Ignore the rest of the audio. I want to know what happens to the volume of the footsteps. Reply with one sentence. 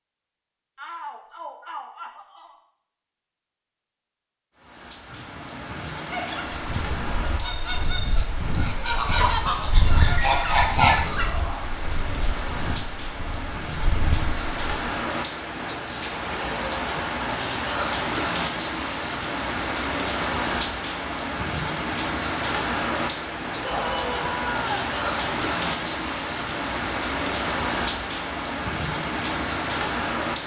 The loudness of the footsteps goes up, then down.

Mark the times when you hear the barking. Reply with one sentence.
You can't hear the barking here.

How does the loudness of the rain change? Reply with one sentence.
The loudness of the rain goes up.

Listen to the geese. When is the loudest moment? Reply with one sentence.
The volume of the geese peaks at 11 seconds.